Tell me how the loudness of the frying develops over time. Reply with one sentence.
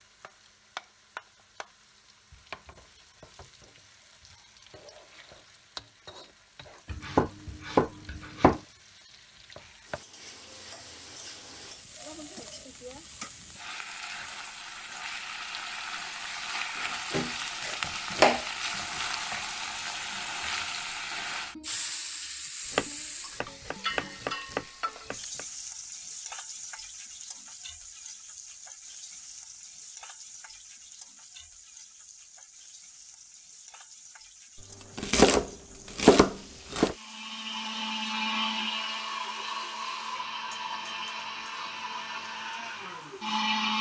The loudness of the frying goes up, then down.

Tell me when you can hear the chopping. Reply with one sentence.
You can hear the chopping from 6.9 to 8.6 s, from 17.1 to 18.5 s, from 22.7 to 25.4 s and from 34.5 to 37.0 s.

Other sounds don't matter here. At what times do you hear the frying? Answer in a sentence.
You can hear the frying from 0.0 to 43.6 s.